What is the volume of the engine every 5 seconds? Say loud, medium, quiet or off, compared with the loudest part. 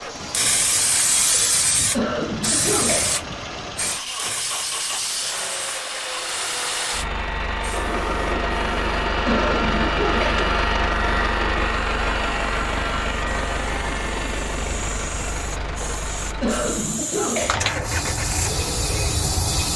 medium, loud, loud, medium.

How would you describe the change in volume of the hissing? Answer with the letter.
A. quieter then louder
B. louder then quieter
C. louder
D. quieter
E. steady
A.